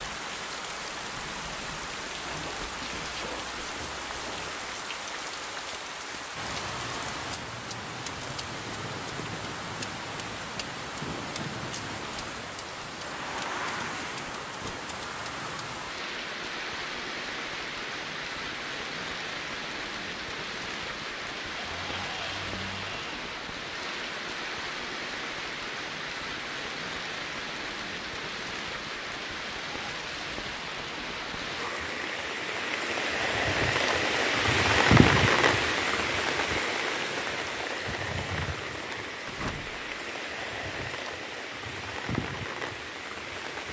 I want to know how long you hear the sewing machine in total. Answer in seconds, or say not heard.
not heard.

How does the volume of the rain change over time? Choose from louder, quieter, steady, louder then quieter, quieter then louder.
louder.